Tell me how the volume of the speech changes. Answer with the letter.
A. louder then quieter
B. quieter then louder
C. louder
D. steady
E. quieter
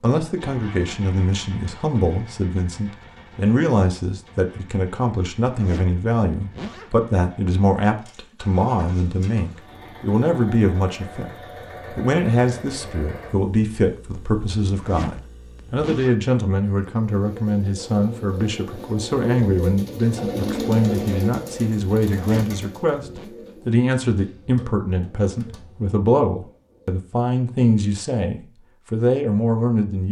D.